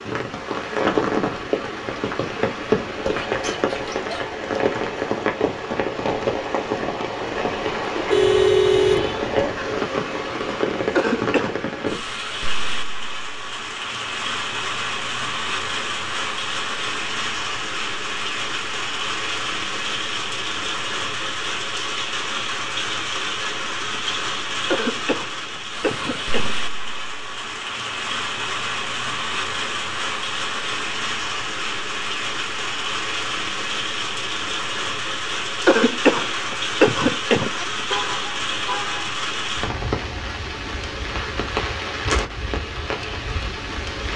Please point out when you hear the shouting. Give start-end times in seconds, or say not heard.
not heard.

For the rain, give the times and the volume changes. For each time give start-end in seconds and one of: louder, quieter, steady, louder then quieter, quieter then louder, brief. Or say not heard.
0.0-44.1 steady.